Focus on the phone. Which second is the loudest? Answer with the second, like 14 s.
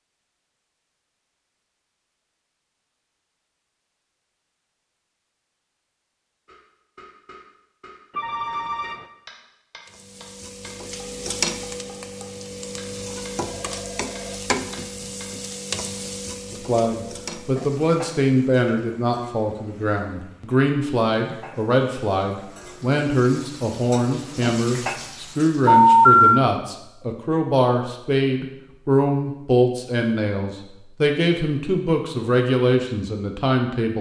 26 s.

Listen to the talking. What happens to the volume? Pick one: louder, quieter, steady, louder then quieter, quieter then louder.
steady.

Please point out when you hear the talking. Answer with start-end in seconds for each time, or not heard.
16.5-33.9.